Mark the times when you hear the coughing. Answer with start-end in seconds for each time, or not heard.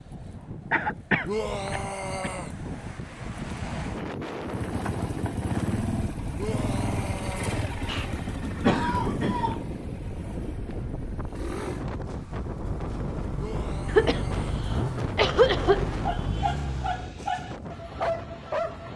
0.7-2.3, 7.8-9.6, 13.8-15.8.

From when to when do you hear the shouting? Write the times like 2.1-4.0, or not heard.
1.2-2.5, 6.3-7.6, 13.3-14.5.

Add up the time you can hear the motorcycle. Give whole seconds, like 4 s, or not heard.
13 s.